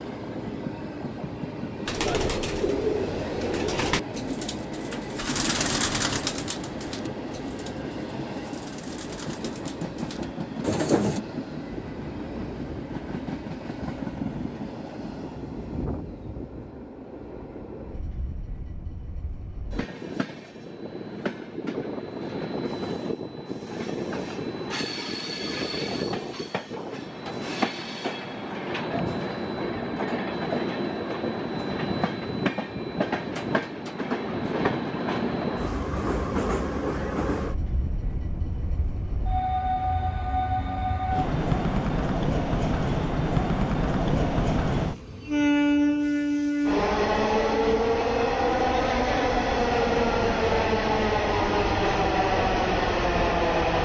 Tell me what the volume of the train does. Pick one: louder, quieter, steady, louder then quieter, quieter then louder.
louder.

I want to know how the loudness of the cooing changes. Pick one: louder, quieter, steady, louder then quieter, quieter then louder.
quieter then louder.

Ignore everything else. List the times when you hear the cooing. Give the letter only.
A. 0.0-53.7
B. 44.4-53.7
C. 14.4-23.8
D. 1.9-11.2
D.